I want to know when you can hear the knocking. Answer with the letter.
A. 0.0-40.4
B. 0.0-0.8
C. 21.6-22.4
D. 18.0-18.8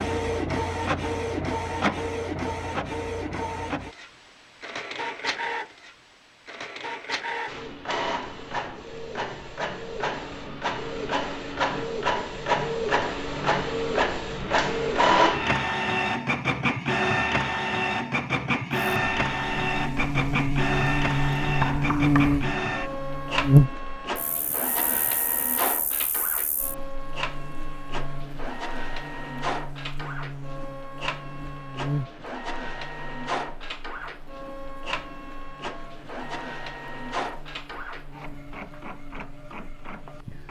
C.